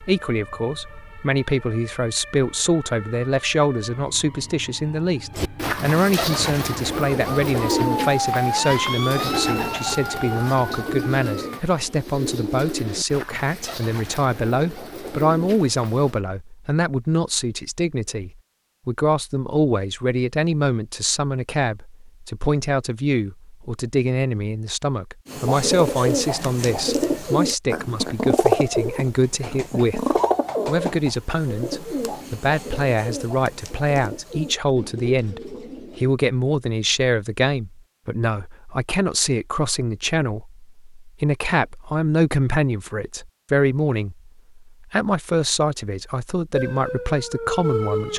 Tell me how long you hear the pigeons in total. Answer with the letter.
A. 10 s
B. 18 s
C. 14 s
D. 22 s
D.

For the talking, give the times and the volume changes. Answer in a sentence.
You can hear the talking from 0.1 to 48.1 s, at a steady volume.